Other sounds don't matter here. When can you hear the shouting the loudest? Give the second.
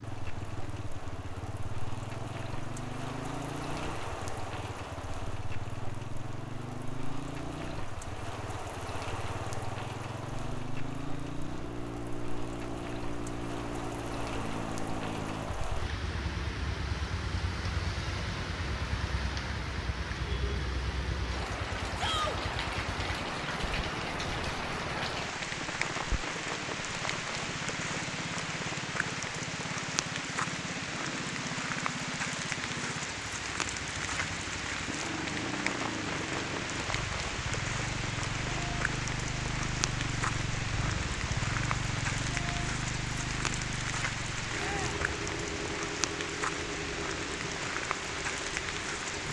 22 s.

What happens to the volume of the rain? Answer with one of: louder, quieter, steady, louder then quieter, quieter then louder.
louder.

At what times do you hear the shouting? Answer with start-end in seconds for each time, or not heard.
21.9-22.4, 44.5-45.0.